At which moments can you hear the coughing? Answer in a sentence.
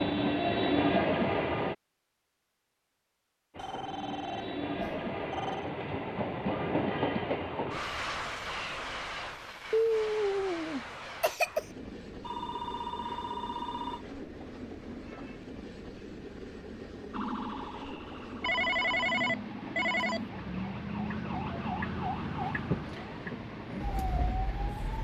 The coughing can be heard from 9.7 to 11.7 s.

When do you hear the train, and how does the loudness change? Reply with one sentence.
You can hear the train briefly from 0.0 to 1.8 s; and from 3.5 to 24.9 s, getting quieter.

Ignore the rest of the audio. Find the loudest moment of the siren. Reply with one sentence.
The loudest moment of the siren is at 22 seconds.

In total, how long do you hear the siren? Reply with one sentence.
The siren can be heard for 8 seconds in total.